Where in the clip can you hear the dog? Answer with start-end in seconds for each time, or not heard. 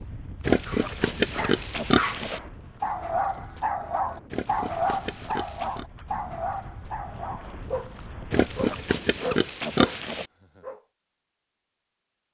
0.7-10.8.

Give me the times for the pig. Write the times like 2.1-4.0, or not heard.
0.4-2.4, 4.3-5.8, 8.3-10.3.